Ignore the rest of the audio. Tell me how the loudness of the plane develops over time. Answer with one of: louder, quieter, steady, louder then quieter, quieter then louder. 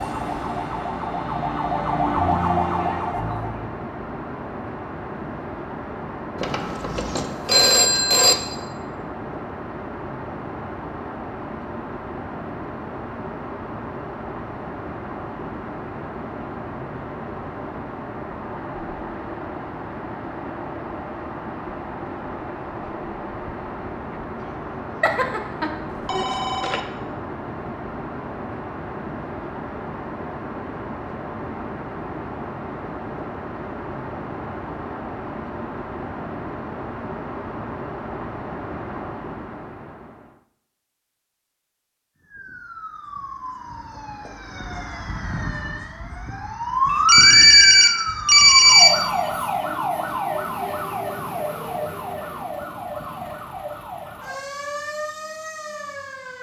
steady.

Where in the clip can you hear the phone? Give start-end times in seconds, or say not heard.
6.4-8.3, 25.0-26.8, 46.9-48.9.